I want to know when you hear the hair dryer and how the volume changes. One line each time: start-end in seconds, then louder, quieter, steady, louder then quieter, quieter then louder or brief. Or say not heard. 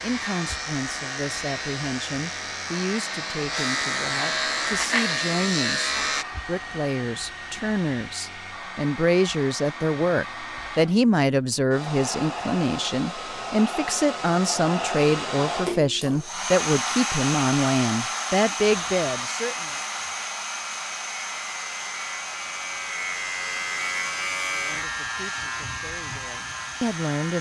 0.0-27.3 louder then quieter.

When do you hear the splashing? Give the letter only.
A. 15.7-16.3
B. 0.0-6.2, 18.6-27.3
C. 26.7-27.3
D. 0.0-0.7
A.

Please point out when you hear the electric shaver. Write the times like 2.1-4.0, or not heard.
0.0-6.2, 18.6-27.3.